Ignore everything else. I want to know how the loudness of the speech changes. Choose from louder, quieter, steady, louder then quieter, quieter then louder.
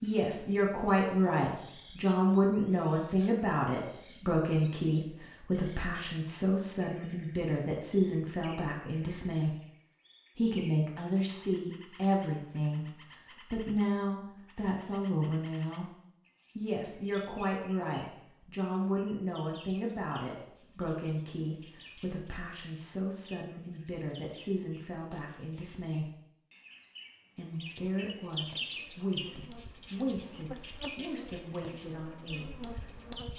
quieter.